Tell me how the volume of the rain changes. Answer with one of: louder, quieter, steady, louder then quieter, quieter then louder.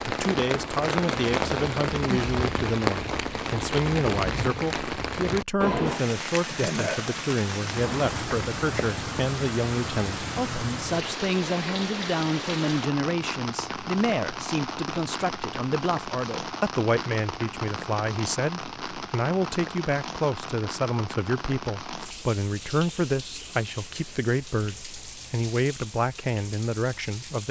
quieter.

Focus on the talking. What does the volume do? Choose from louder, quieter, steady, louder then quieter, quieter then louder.
steady.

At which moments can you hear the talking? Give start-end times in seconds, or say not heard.
0.1-27.4.